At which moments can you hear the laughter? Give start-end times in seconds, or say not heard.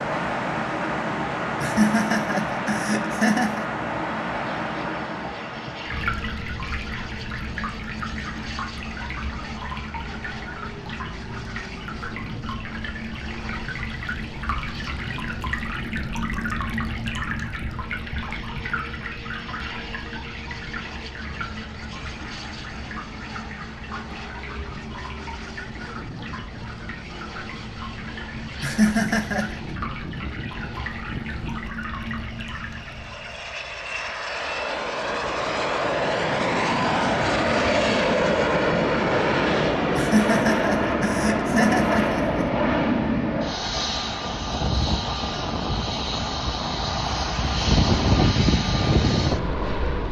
1.6-3.6, 28.6-29.6, 40.0-42.5.